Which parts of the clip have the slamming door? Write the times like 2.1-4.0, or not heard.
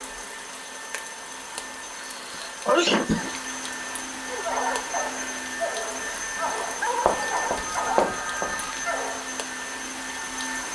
not heard.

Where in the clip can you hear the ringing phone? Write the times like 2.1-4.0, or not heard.
7.0-8.8.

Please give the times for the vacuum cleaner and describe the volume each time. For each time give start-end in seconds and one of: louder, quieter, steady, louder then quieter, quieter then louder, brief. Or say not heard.
0.0-10.7 louder.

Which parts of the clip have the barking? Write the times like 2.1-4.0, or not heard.
4.2-9.4.